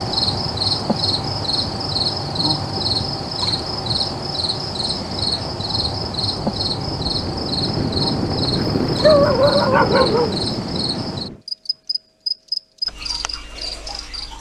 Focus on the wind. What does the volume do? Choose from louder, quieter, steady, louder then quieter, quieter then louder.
louder.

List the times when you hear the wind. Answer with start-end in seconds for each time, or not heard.
0.0-11.4.